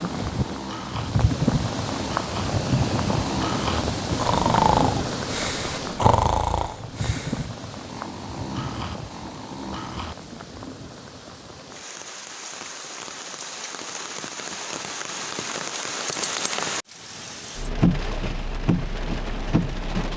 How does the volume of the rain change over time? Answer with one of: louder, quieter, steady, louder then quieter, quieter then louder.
quieter then louder.